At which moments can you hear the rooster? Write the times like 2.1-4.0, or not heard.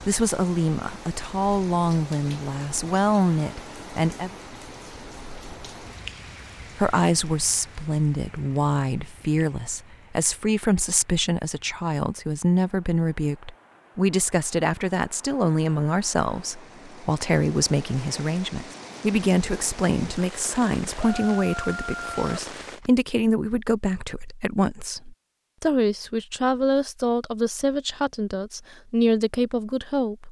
20.9-22.9.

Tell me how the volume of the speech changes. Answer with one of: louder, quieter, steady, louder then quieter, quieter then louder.
steady.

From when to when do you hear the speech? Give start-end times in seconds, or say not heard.
0.1-4.3, 6.8-30.2.